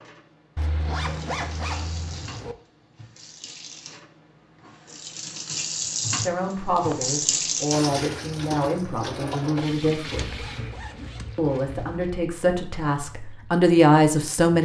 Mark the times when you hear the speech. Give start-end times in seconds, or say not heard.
6.2-10.4, 11.3-14.5.